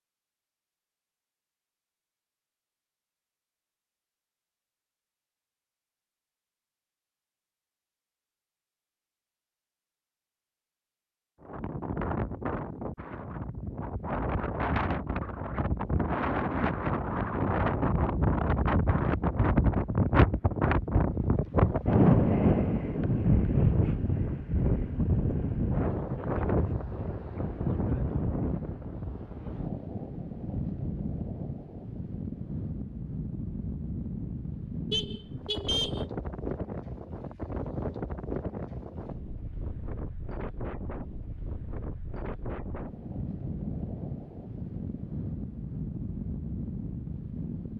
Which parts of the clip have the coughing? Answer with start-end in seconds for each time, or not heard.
not heard.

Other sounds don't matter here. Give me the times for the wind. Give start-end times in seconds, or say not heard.
11.4-47.7.